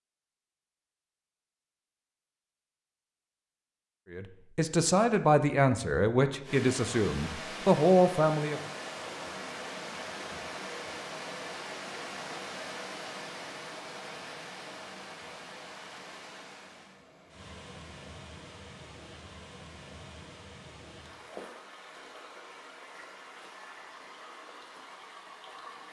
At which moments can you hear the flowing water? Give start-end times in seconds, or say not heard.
6.4-25.8.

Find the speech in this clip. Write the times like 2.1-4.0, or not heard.
4.1-8.6.